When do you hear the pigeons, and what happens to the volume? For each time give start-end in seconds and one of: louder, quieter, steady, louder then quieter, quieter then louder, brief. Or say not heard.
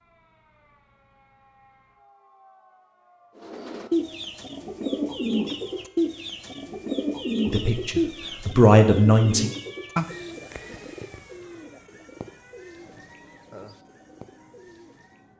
3.4-15.2 quieter.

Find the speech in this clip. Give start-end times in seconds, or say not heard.
7.5-9.5.